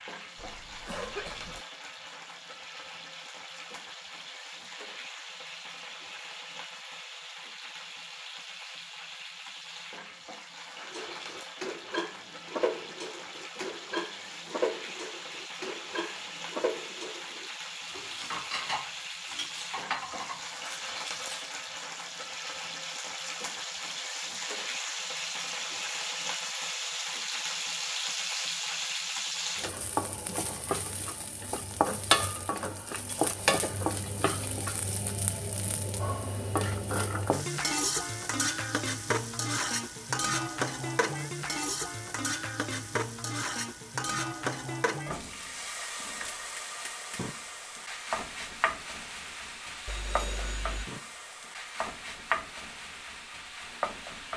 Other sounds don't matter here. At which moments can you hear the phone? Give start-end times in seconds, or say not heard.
49.9-50.9.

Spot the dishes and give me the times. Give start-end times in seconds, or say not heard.
10.9-21.6.